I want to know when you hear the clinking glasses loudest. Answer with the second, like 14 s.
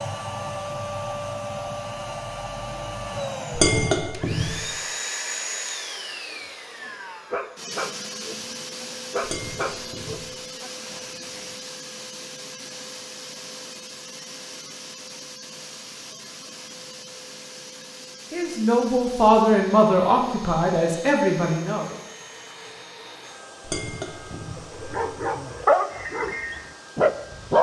4 s.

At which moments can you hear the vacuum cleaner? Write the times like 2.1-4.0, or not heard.
0.0-27.5.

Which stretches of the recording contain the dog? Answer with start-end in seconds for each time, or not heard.
6.3-11.5, 24.3-27.5.